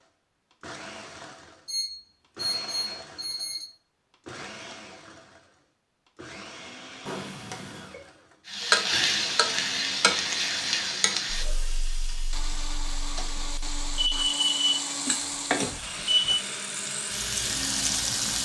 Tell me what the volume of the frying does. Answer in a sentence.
The volume of the frying goes down, then up.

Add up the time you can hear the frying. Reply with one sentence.
You can hear the frying for 10 seconds altogether.